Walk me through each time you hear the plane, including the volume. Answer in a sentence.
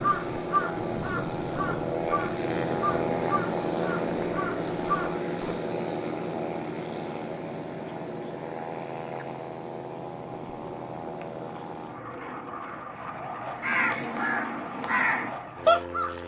The plane can be heard from 0.0 to 16.2 s, getting quieter.